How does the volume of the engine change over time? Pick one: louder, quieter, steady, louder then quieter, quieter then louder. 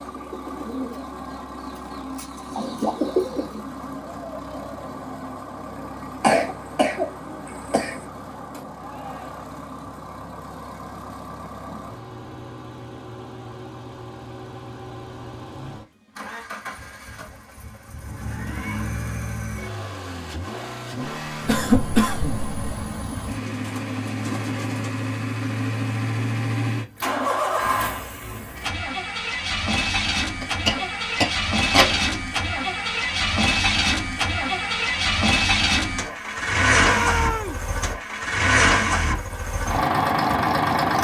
louder.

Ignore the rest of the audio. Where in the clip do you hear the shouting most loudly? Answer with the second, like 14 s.
37 s.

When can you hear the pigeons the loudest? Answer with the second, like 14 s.
3 s.